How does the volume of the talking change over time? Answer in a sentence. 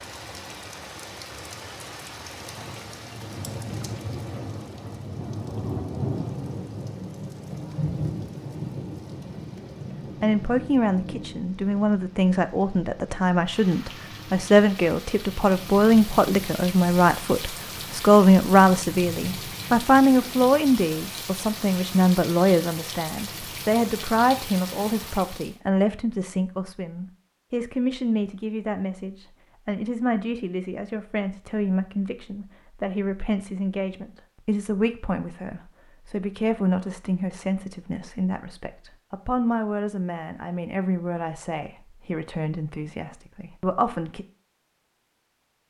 The volume of the talking goes down.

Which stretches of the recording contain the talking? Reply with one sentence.
The talking can be heard from 10.2 to 44.2 s.